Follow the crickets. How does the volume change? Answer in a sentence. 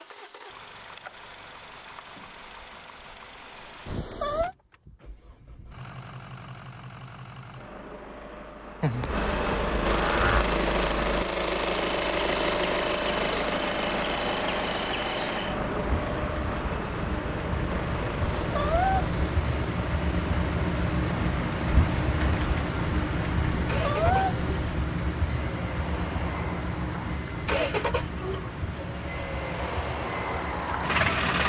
The loudness of the crickets goes up, then down.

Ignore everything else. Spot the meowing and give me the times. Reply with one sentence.
You can hear the meowing from 3.9 to 4.5 s, from 18.4 to 19.2 s and from 23.6 to 24.6 s.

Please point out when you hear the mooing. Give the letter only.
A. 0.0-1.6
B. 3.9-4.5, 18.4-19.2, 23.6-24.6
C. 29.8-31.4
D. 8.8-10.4
D.